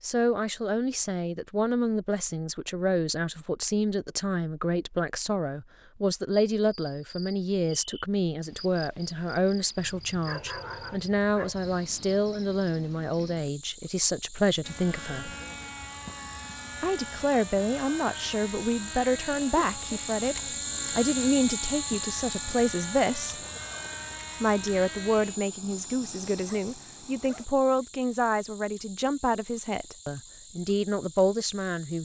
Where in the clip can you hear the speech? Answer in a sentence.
You can hear the speech from 0.0 to 15.3 s, from 16.8 to 23.4 s and from 24.4 to 32.0 s.